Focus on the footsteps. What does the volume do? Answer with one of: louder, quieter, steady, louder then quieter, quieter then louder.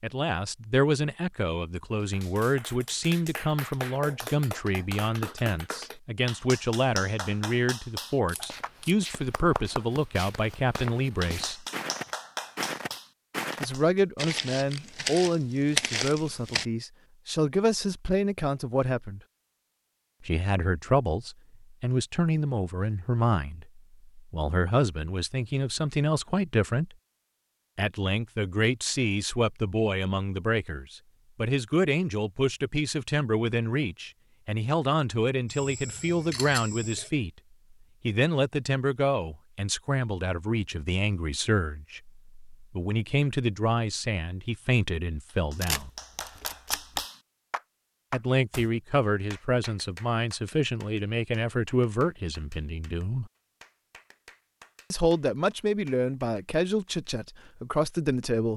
louder.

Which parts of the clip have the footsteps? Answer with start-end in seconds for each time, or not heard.
8.3-16.6.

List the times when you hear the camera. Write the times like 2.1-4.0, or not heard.
8.2-8.9, 35.5-37.1, 45.6-47.0.